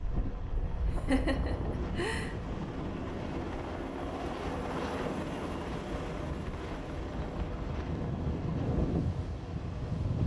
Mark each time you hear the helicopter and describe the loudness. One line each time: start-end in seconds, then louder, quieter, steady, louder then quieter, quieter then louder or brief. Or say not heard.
0.0-10.2 louder then quieter.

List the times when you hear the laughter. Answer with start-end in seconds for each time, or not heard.
0.7-2.5.